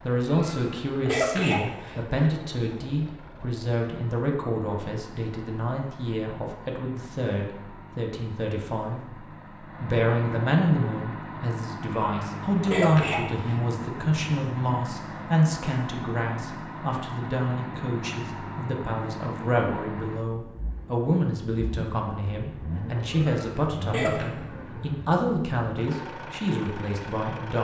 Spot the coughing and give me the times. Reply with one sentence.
The coughing can be heard from 0.2 to 2.3 s, from 12.1 to 13.6 s and from 23.1 to 24.3 s.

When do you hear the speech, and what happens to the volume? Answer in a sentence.
The speech can be heard from 0.0 to 27.6 s, at a steady volume.